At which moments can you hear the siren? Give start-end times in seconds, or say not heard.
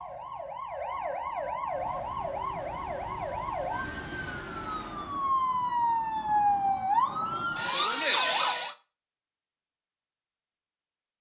0.0-8.8.